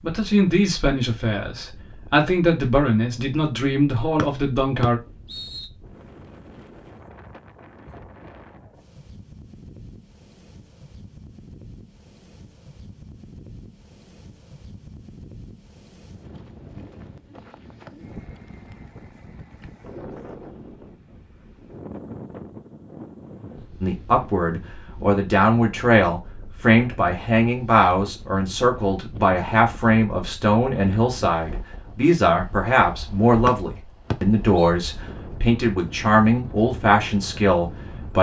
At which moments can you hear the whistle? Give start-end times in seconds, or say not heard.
4.2-5.7, 33.5-34.7.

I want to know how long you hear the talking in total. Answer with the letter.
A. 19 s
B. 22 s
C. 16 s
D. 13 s
A.